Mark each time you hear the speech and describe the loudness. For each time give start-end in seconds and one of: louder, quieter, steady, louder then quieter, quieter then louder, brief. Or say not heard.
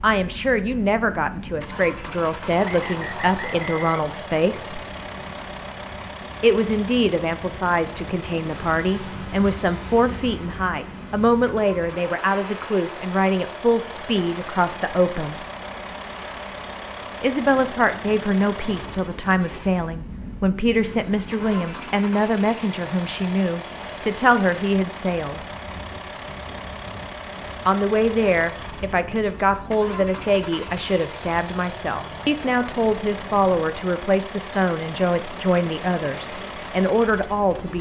0.0-4.8 steady
6.4-15.4 steady
17.2-25.4 steady
27.6-37.7 steady.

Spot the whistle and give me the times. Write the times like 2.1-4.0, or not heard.
2.6-3.9.